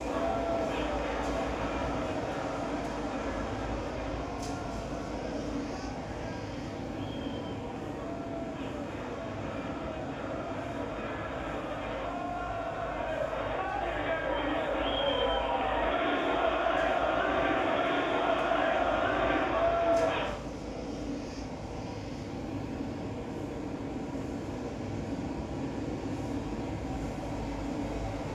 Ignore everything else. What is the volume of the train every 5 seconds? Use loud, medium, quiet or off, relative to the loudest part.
loud, loud, medium, medium, loud, loud.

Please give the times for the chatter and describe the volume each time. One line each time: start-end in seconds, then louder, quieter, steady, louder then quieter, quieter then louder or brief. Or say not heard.
0.0-20.4 quieter then louder.